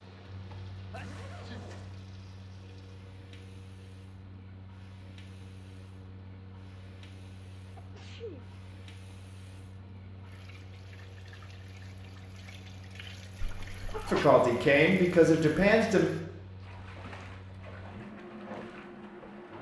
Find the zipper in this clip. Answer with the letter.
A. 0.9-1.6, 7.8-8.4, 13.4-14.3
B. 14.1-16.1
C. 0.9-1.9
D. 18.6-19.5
C.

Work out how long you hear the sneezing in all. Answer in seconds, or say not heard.
2 s.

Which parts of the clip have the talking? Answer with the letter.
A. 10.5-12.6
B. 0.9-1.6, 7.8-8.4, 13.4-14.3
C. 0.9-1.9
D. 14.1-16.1
D.